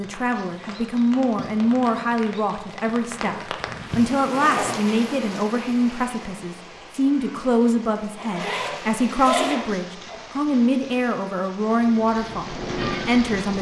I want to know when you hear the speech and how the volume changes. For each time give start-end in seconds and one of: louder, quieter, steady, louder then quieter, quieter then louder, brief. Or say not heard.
0.0-13.5 steady.